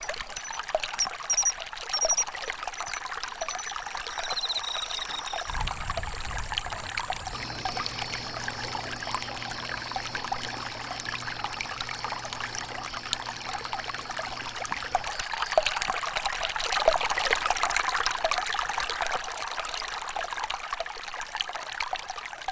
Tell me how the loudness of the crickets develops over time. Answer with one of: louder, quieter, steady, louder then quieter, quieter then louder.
quieter.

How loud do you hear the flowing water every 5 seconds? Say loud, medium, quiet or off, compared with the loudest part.
medium, medium, medium, loud, medium.